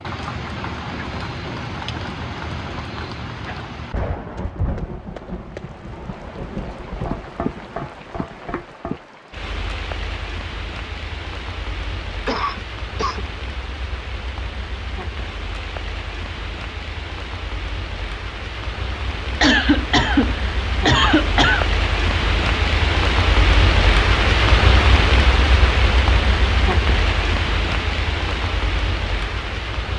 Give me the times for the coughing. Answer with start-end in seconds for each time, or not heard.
12.2-13.2, 19.4-21.6.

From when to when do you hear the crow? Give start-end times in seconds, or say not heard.
not heard.